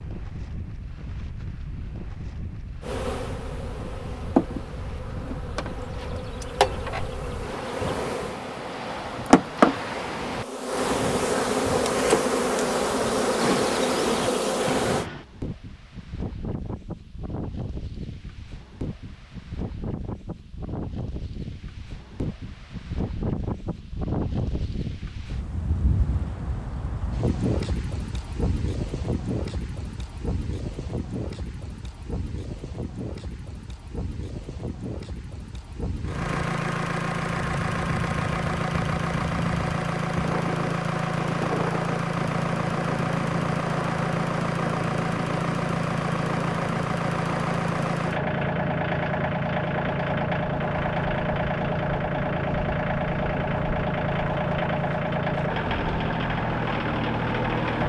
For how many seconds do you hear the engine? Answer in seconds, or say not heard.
22 s.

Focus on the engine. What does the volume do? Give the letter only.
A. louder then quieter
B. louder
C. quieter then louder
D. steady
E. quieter
D.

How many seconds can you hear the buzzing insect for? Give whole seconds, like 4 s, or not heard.
12 s.